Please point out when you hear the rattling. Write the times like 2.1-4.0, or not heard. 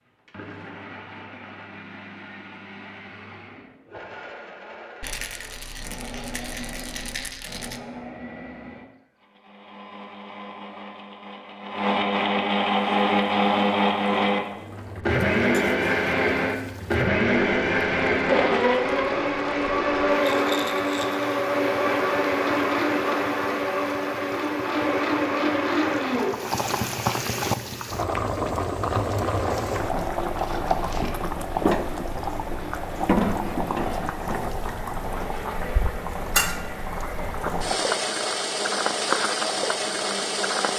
5.0-7.8, 20.2-21.2, 30.4-31.2.